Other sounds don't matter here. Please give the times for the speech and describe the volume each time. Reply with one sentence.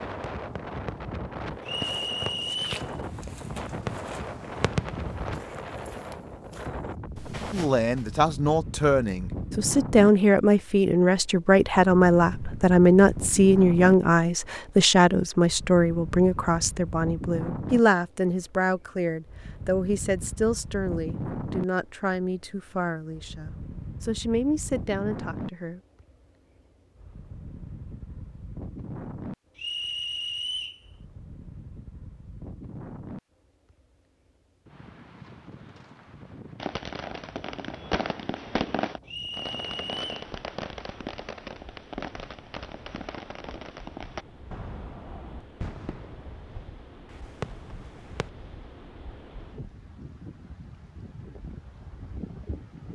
The speech can be heard from 7.5 to 25.8 s, getting quieter.